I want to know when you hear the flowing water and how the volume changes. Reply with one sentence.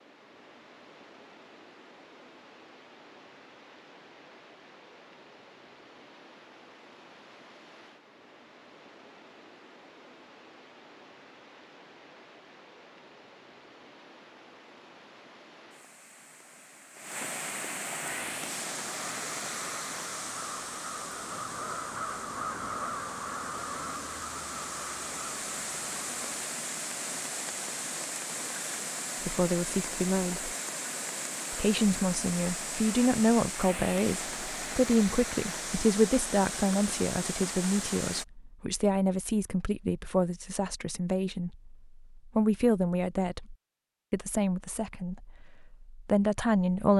The flowing water can be heard from 0.0 to 38.2 s, getting louder.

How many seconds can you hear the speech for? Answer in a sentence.
The speech can be heard for 17 seconds in total.